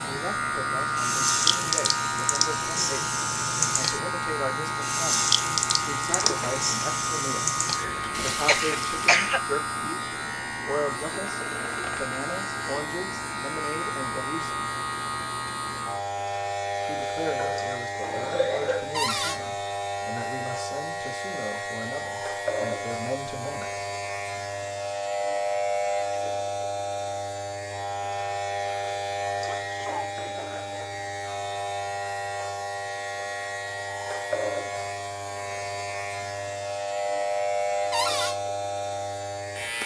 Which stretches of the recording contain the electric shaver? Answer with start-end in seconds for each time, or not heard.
0.0-39.8.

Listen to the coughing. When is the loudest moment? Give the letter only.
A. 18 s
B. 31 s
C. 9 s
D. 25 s
C.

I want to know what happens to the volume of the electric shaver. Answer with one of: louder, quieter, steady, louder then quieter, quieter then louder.
steady.